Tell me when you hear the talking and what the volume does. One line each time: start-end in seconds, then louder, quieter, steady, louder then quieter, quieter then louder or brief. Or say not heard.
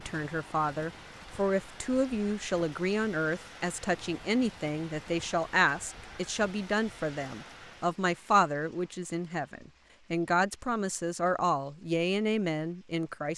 0.0-13.3 steady.